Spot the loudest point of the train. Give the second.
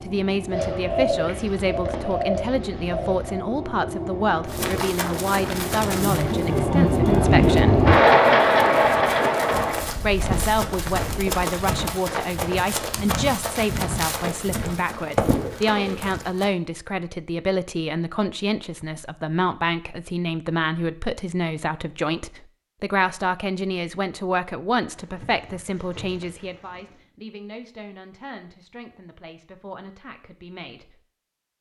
8 s.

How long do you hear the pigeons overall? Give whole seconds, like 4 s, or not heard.
7 s.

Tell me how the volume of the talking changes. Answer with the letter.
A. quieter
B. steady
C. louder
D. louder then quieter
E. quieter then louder
A.